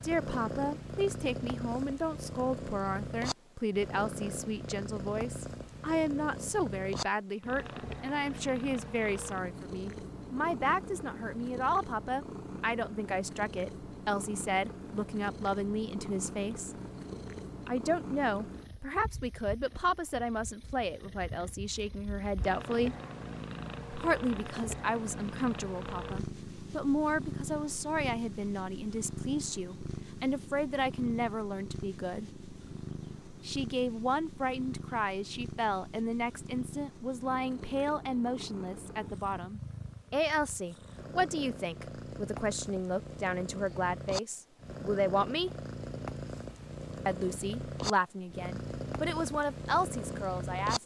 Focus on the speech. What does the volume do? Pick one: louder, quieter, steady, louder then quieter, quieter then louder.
steady.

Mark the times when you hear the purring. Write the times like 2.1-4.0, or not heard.
0.0-50.8.